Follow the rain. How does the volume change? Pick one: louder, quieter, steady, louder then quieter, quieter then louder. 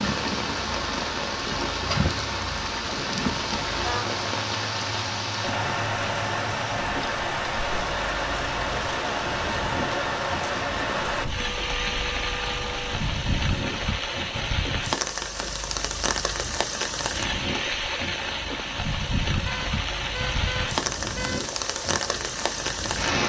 steady.